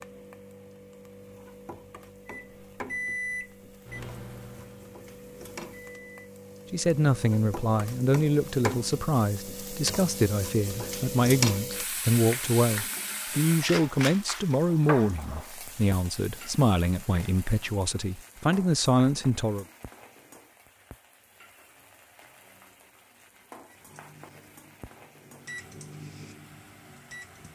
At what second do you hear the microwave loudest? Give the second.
3 s.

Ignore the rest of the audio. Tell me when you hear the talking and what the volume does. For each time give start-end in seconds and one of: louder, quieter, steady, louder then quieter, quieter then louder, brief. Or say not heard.
6.7-19.6 steady.